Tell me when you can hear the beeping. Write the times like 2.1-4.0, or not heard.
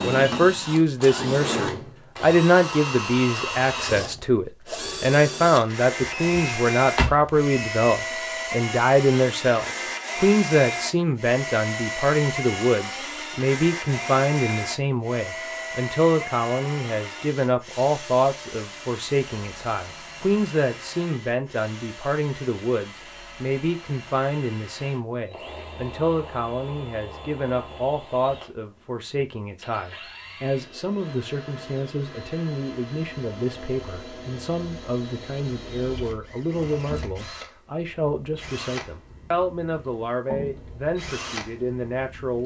6.1-8.0.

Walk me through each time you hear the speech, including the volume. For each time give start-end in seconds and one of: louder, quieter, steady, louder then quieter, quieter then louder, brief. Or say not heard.
0.0-42.4 quieter.